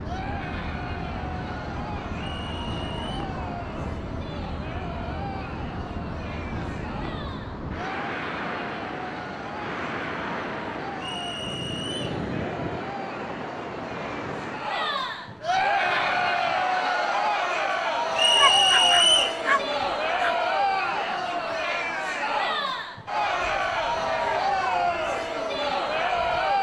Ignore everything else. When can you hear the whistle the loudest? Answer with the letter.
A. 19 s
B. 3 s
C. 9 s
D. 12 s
A.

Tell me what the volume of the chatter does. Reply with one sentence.
The volume of the chatter goes up.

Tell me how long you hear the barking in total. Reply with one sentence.
The barking can be heard for 2 seconds in total.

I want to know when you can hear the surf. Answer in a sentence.
You can hear the surf from 0.0 to 26.5 s.